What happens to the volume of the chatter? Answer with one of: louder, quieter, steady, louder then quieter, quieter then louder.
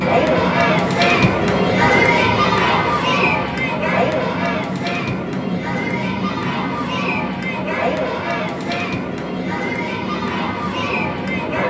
quieter.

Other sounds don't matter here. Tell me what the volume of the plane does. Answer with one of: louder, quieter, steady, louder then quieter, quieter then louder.
steady.